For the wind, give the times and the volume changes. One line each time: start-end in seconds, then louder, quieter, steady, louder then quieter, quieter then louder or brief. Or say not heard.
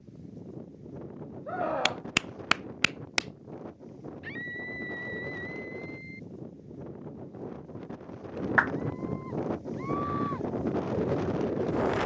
0.0-12.0 louder.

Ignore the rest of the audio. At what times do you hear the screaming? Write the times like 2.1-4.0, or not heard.
1.4-2.0, 4.2-6.2, 8.8-10.4.